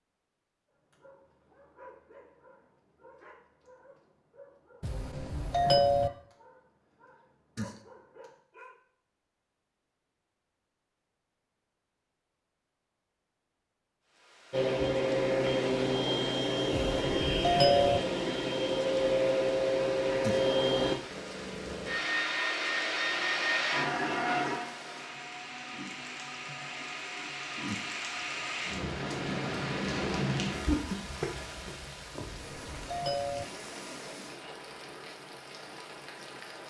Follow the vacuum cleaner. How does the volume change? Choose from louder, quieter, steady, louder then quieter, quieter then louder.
quieter.